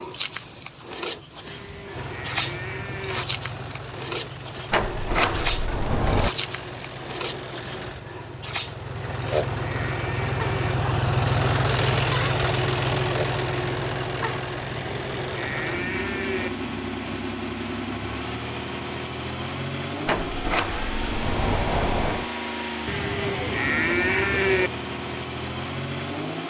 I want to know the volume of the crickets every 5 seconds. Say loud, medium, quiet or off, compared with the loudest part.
loud, loud, medium, off, off, off.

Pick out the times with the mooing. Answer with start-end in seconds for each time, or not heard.
1.4-3.2, 8.9-10.8, 14.7-16.5, 22.9-24.7.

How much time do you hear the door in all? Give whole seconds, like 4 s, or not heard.
4 s.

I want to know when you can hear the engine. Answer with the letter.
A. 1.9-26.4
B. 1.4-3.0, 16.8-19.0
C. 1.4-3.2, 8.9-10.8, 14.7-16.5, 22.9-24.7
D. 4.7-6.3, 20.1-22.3
A.